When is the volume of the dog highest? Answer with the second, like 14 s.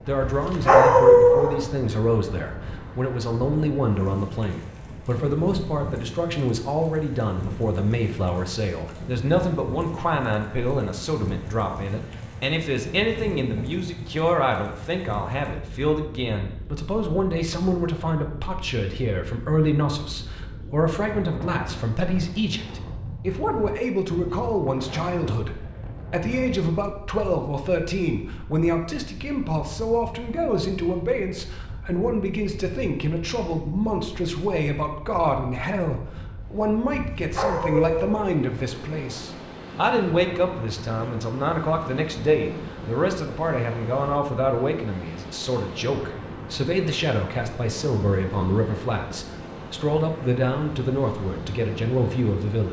1 s.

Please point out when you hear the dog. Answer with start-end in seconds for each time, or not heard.
0.2-1.6, 37.1-38.3.